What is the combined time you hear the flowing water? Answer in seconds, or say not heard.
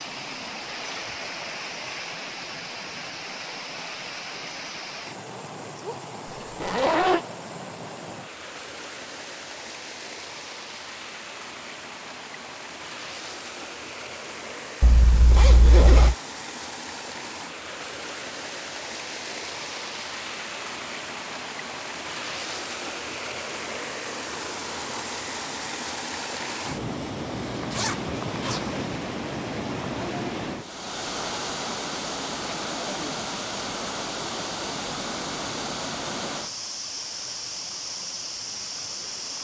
39 s.